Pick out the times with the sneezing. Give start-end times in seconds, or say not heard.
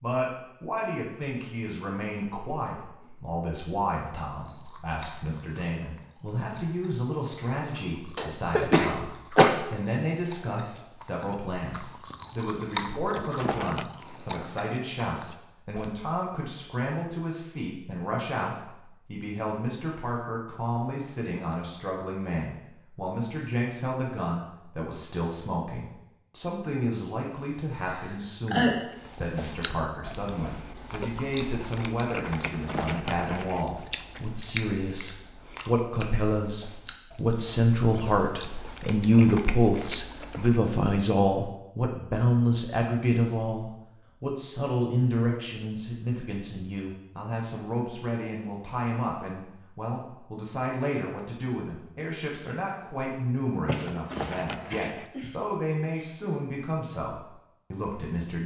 8.2-9.5, 27.8-29.2, 53.6-55.2.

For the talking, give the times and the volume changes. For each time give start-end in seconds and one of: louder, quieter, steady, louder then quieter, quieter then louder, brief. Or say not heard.
0.0-58.4 louder then quieter.